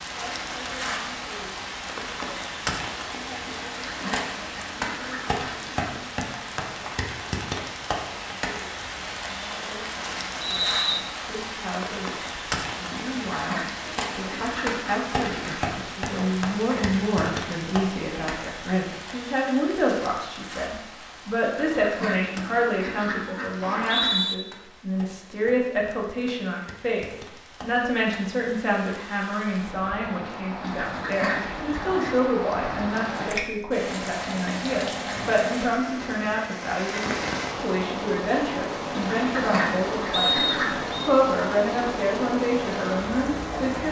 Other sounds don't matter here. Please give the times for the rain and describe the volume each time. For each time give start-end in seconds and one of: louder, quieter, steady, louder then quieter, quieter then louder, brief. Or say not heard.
0.0-43.8 quieter then louder.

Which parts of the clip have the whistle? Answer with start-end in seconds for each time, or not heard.
10.4-11.1, 23.6-24.4, 40.1-41.1.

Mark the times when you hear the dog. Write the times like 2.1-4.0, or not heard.
not heard.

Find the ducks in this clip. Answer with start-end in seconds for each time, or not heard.
3.5-5.7, 12.9-15.7, 21.4-24.2, 30.6-32.1, 39.0-40.9.